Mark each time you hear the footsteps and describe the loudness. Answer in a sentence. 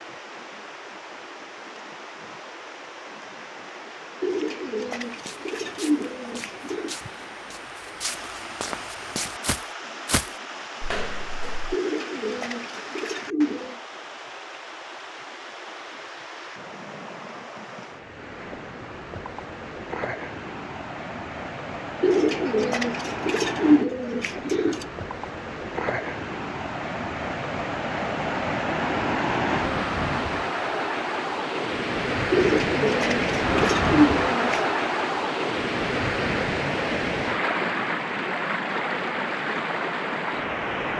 The footsteps can be heard from 5.0 to 11.8 s, getting louder.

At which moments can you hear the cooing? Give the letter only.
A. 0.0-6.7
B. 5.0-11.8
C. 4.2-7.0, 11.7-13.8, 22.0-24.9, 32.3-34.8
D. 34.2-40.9
C.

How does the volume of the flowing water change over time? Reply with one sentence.
The volume of the flowing water goes up.